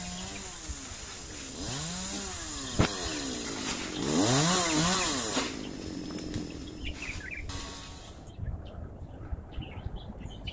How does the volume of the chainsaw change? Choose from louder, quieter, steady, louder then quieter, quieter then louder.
louder then quieter.